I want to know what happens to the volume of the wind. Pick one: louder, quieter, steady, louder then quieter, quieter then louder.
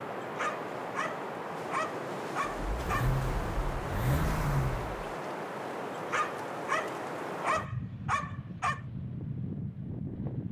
steady.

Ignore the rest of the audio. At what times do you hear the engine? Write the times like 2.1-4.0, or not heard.
2.7-5.1.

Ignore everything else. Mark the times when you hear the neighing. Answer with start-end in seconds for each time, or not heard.
not heard.